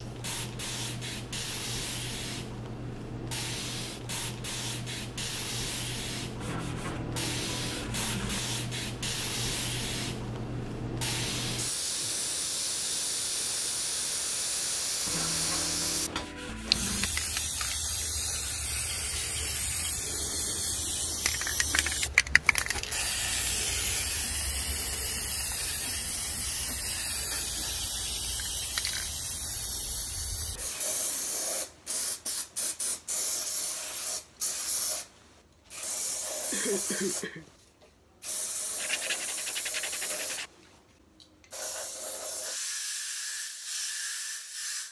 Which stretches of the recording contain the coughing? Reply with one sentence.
The coughing can be heard from 36.5 to 37.5 s.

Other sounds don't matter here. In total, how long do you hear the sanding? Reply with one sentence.
You can hear the sanding for 6 seconds altogether.